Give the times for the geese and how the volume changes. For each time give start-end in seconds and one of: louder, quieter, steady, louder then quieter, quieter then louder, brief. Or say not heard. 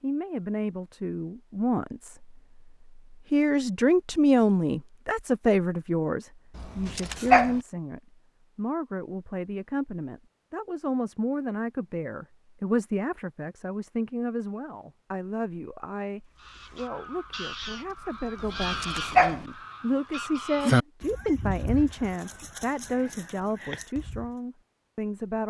16.4-24.4 louder then quieter.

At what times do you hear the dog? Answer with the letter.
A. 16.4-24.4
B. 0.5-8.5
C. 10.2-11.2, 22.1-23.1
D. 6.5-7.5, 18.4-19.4
D.